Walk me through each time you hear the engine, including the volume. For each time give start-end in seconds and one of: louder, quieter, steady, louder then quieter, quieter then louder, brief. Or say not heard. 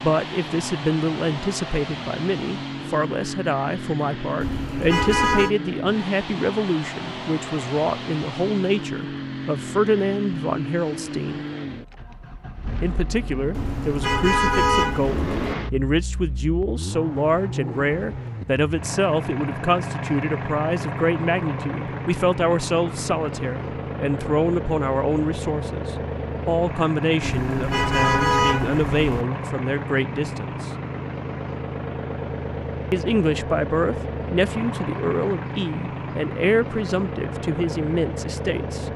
0.0-38.9 steady.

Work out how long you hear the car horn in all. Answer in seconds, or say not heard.
5 s.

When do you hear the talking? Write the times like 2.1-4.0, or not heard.
0.0-11.4, 12.8-30.7, 32.9-38.9.